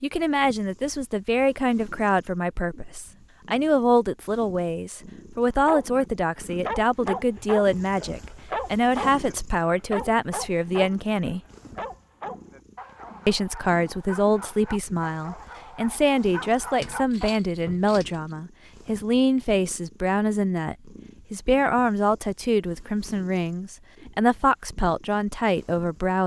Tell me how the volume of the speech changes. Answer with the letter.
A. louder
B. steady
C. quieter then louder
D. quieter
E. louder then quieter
B.